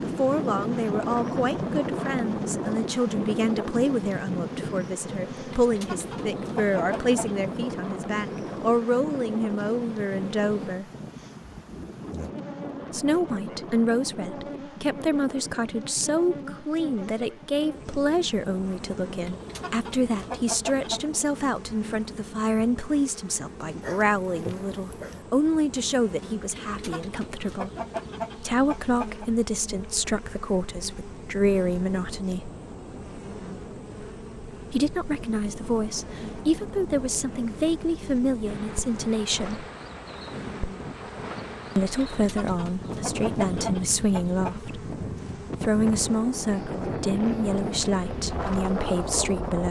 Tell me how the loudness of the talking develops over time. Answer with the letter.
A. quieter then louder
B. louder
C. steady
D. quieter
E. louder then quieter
C.